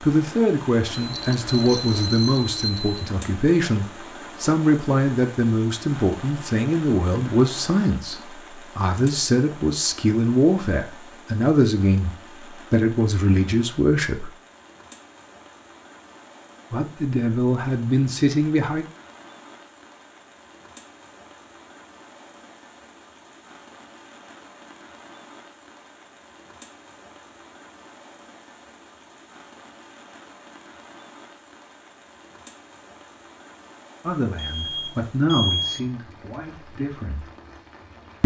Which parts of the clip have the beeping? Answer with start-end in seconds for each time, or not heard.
0.9-3.0, 34.4-35.9.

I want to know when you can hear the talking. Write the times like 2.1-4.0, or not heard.
0.0-12.1, 12.7-14.3, 16.7-18.9, 34.0-37.2.